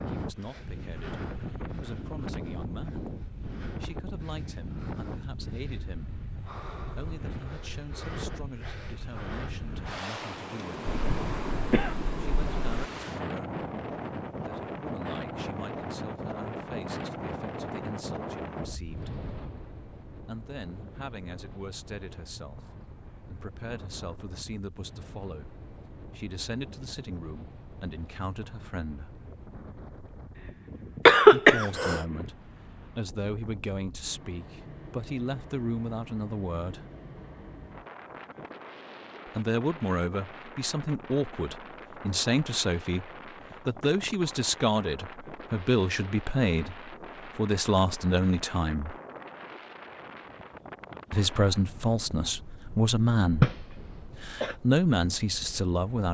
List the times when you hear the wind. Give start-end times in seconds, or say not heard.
0.0-56.0.